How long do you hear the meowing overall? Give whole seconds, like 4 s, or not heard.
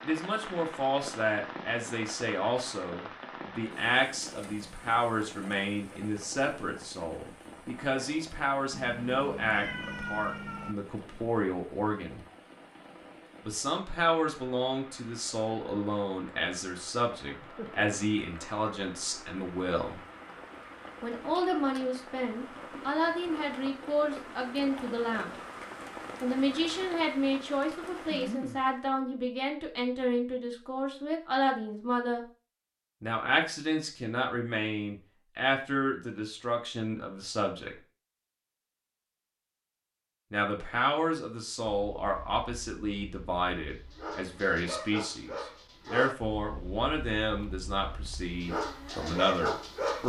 2 s.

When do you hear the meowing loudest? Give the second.
10 s.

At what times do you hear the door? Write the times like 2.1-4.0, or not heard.
not heard.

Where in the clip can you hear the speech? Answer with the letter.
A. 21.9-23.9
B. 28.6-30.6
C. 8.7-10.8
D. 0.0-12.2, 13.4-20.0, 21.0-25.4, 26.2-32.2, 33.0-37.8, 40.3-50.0
D.